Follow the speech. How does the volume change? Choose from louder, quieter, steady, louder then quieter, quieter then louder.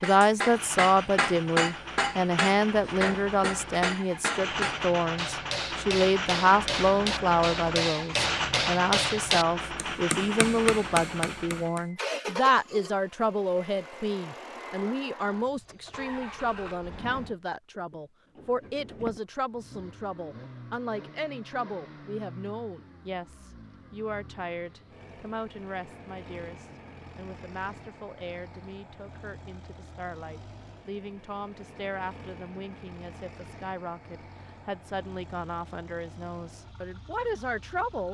quieter.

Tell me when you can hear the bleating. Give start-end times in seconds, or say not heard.
not heard.